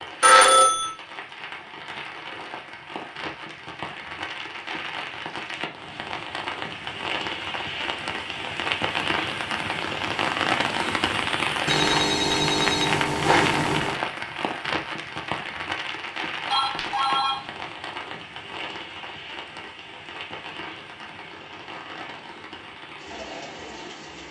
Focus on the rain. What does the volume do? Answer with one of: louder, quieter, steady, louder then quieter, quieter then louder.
louder then quieter.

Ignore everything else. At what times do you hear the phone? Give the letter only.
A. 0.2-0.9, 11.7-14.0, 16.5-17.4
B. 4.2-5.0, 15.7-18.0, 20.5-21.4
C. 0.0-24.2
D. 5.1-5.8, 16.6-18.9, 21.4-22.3
A.